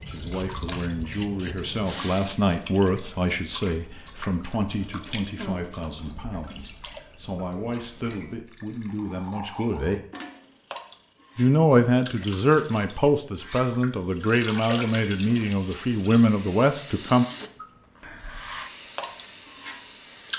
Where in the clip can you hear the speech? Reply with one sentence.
You can hear the speech from 0.0 to 10.0 s and from 11.3 to 17.2 s.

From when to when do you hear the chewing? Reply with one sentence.
You can't hear the chewing here.